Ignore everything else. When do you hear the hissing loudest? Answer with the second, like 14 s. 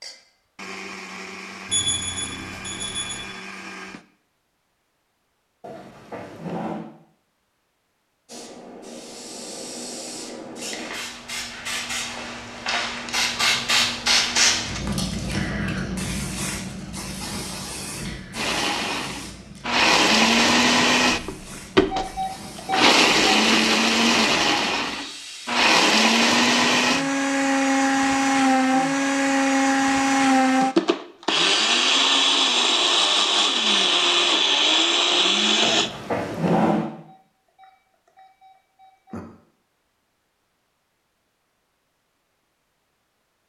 14 s.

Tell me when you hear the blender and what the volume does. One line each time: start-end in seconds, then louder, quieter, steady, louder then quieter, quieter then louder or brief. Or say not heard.
0.0-4.0 steady
18.4-35.9 steady.